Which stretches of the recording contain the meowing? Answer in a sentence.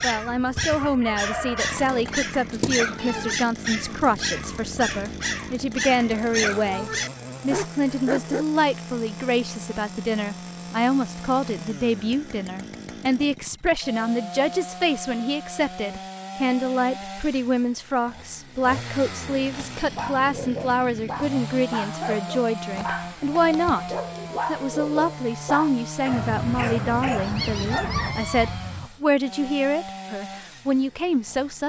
The meowing can be heard from 2.5 to 3.4 s.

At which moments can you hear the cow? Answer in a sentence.
You can't hear the cow here.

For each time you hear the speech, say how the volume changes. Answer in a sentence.
You can hear the speech from 0.0 to 31.6 s, at a steady volume.